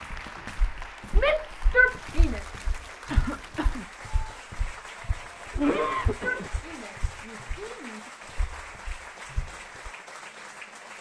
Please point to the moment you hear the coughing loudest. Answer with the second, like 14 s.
6 s.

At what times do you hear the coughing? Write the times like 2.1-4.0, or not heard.
3.1-3.9, 5.5-6.5.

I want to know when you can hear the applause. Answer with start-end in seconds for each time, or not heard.
0.0-10.9.